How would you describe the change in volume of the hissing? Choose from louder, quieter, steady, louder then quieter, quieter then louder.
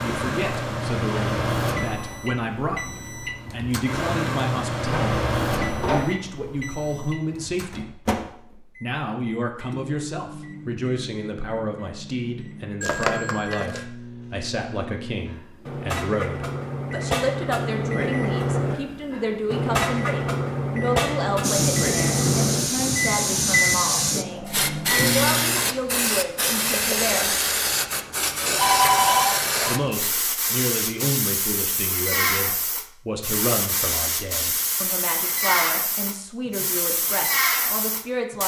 steady.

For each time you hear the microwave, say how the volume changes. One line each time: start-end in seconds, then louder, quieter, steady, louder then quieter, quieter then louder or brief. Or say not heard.
0.0-25.8 quieter then louder.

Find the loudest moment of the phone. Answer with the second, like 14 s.
29 s.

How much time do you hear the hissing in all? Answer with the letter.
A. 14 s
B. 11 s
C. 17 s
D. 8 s
C.